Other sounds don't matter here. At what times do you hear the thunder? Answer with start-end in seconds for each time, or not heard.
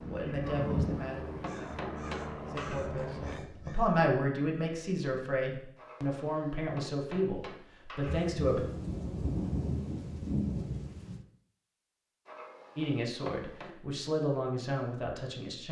8.1-11.2.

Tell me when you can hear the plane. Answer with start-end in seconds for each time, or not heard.
0.0-3.5.